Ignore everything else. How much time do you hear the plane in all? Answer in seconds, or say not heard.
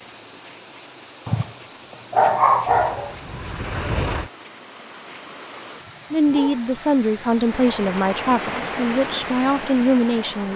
2 s.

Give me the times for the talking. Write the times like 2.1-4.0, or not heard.
6.1-10.5.